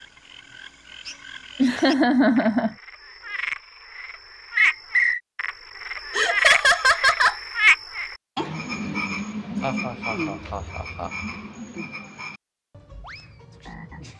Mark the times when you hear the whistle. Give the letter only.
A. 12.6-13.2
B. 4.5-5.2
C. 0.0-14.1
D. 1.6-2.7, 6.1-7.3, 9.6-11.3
B.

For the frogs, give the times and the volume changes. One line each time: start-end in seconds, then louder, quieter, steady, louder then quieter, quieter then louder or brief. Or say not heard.
0.0-14.1 louder then quieter.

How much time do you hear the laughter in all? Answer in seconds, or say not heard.
4 s.